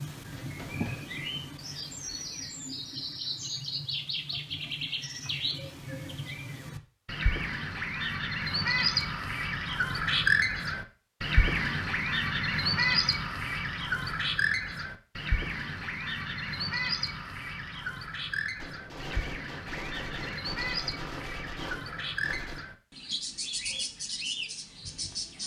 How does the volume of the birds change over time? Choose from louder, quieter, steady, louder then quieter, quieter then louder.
louder then quieter.